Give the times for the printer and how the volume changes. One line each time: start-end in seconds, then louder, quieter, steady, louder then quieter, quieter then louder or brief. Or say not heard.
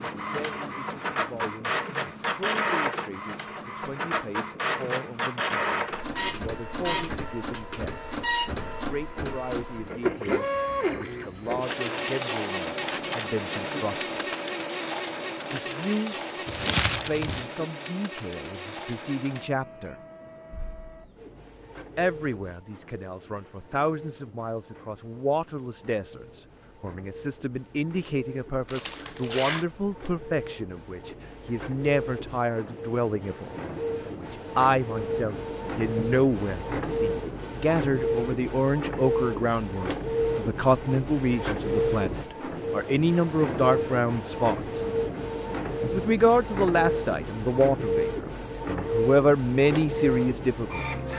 0.0-51.1 quieter then louder.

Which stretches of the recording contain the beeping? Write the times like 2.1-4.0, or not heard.
not heard.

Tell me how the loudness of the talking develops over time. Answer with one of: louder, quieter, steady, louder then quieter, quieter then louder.
louder.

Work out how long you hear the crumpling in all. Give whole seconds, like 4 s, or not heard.
2 s.